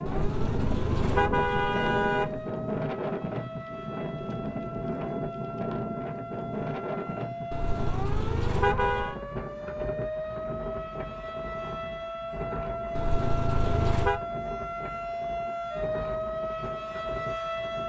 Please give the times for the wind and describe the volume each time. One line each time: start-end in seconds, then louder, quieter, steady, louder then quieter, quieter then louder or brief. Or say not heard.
0.0-17.8 quieter.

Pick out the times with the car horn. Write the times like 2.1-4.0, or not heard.
0.1-2.5, 7.5-9.2, 12.9-14.2.